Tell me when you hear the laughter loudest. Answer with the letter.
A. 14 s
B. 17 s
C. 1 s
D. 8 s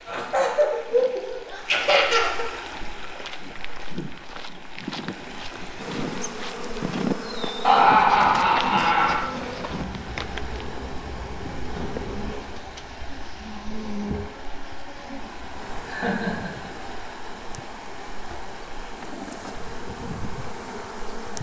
D.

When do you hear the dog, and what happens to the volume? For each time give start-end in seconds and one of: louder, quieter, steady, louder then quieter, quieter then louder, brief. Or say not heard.
not heard.